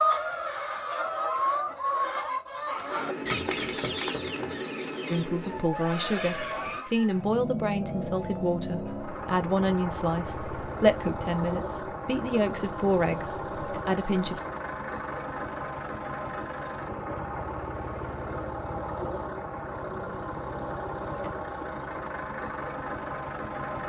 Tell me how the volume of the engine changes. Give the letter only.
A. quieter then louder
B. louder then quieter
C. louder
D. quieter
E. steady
E.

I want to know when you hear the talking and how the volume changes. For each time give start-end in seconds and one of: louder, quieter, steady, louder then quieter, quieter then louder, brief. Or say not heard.
5.0-14.4 steady.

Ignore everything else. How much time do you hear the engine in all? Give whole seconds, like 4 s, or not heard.
21 s.